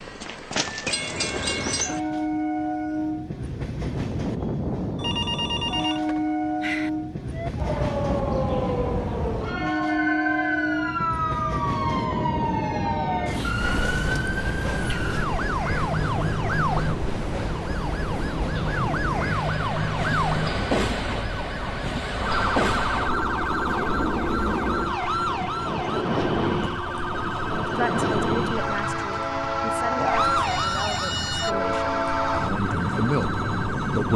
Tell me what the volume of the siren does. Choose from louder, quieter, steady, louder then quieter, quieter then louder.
steady.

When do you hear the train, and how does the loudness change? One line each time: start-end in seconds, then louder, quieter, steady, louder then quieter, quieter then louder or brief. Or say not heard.
0.0-34.1 steady.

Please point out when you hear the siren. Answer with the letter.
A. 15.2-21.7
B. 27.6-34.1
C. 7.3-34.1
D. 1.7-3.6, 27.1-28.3
C.